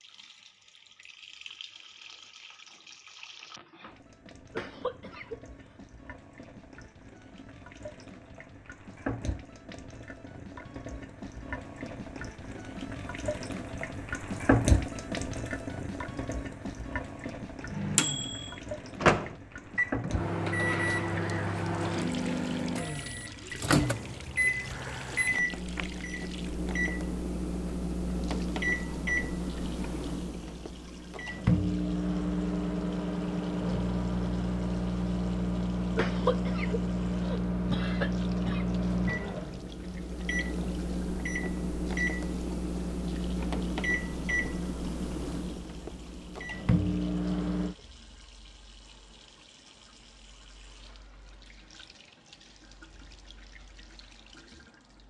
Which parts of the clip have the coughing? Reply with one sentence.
The coughing can be heard from 4.5 to 5.8 s and from 36.0 to 38.6 s.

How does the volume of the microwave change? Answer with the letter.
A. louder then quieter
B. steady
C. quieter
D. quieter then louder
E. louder
B.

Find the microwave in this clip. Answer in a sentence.
The microwave can be heard from 17.7 to 47.8 s.